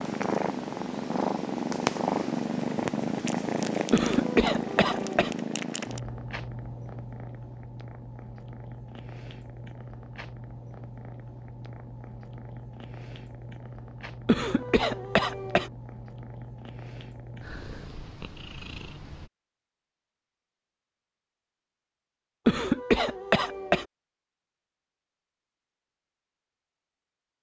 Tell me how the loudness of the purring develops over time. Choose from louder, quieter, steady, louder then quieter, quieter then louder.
quieter.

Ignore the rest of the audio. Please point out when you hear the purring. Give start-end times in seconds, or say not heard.
0.0-19.3.